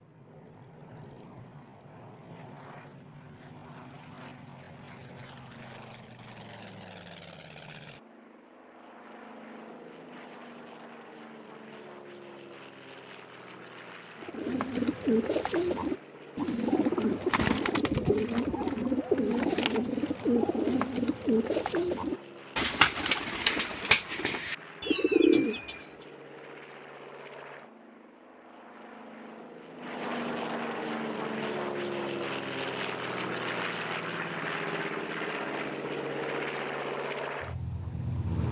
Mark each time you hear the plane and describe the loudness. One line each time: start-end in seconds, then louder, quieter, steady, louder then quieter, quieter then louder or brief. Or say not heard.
0.0-38.4 louder.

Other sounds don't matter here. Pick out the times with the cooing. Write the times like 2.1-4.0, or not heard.
14.2-25.9.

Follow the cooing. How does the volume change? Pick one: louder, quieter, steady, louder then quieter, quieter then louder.
steady.